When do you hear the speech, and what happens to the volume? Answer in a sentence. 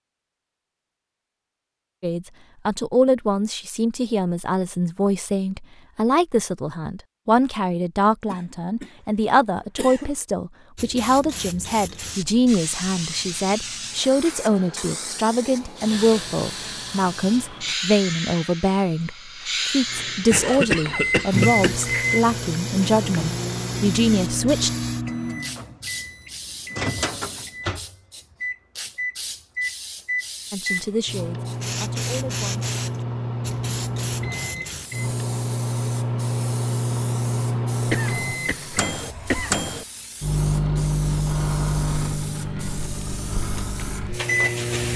The speech can be heard from 2.0 to 24.7 s, at a steady volume; and briefly from 30.5 to 32.7 s.